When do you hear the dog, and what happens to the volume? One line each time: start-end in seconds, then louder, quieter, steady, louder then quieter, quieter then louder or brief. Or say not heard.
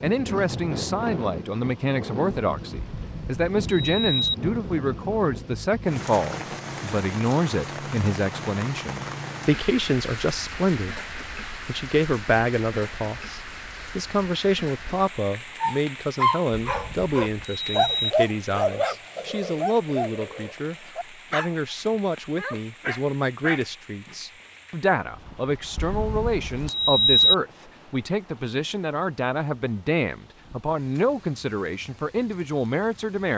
15.6-21.6 quieter
22.4-24.1 brief.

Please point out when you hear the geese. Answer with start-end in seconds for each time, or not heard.
not heard.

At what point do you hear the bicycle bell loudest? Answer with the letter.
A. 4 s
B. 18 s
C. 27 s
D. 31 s
C.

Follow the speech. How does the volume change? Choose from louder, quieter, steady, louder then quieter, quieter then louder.
steady.